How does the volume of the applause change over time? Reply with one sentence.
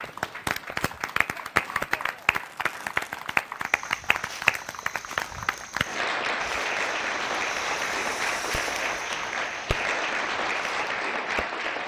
The loudness of the applause stays about the same.